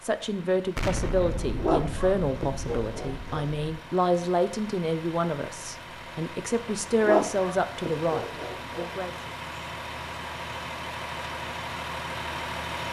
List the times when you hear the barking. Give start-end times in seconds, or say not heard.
1.6-3.5, 7.0-8.9.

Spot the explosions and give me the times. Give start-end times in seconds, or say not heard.
0.8-3.8.